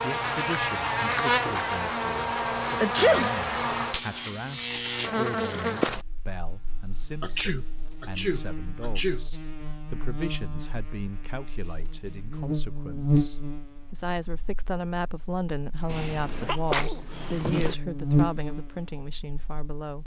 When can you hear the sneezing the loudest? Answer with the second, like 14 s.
3 s.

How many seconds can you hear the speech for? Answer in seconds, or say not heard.
20 s.